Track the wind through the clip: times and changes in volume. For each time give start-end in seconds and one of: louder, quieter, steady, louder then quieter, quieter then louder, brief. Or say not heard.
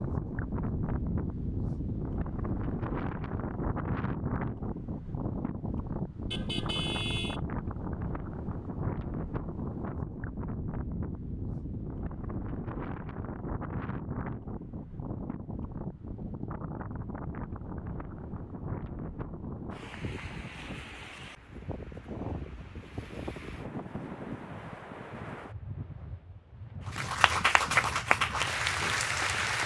0.0-29.6 quieter.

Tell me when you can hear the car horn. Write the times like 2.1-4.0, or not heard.
6.3-7.4.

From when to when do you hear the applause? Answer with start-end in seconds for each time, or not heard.
26.9-29.6.